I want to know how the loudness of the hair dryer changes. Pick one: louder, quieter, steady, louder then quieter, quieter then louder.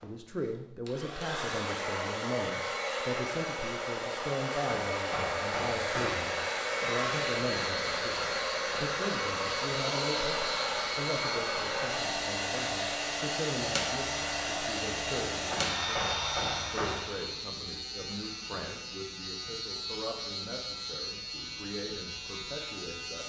steady.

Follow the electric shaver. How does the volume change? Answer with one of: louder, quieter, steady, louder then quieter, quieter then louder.
steady.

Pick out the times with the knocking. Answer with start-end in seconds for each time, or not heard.
4.7-6.3, 15.5-17.1.